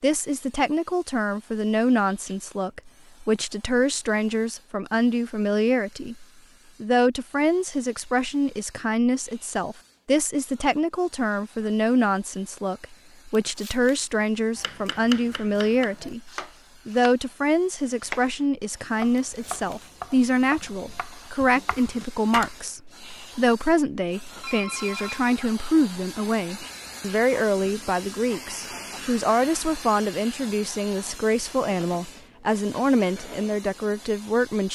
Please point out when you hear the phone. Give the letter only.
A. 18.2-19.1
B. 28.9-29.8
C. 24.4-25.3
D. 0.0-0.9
C.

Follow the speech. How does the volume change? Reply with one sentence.
The loudness of the speech stays about the same.